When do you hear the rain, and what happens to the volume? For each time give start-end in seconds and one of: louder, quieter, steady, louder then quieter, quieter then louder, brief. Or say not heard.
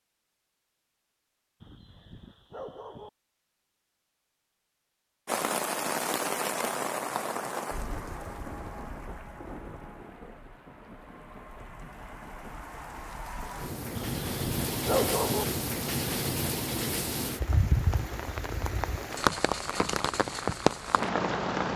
5.2-21.7 quieter then louder.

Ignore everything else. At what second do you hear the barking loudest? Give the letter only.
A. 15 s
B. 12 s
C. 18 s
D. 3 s
A.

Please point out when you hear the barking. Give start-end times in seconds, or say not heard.
1.6-3.1, 13.9-15.4.